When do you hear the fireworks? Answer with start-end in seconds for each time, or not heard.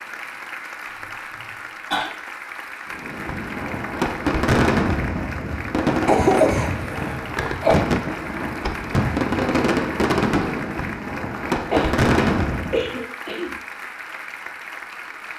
2.9-13.0.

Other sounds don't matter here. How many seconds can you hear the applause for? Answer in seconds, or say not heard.
15 s.